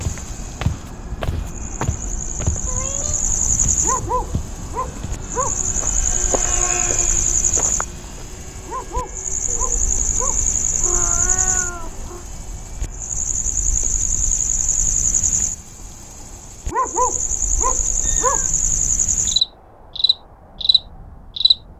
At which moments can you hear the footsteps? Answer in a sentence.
The footsteps can be heard from 0.0 to 8.2 s.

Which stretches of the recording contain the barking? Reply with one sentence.
You can hear the barking from 3.8 to 5.6 s, from 8.7 to 10.4 s and from 16.7 to 18.4 s.